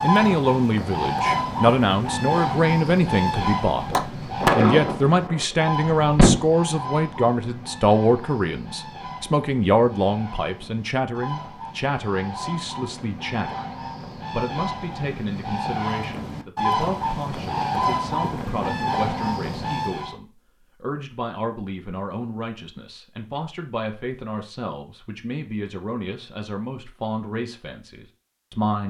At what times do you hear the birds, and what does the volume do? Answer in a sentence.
The birds can be heard from 0.0 to 20.1 s, getting quieter then louder.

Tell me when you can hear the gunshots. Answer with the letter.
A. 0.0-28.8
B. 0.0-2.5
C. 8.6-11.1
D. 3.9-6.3
D.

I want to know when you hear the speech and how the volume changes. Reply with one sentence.
You can hear the speech from 0.0 to 28.8 s, getting quieter.